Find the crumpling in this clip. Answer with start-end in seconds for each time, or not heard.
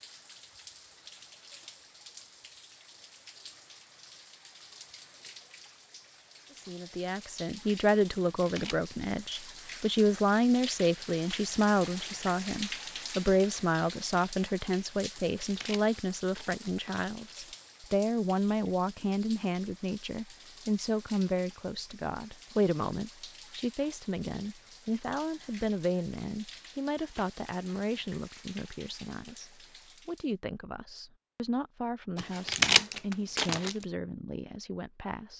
8.2-8.9, 15.2-17.7, 32.1-33.8.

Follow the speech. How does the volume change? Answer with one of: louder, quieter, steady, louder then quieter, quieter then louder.
quieter.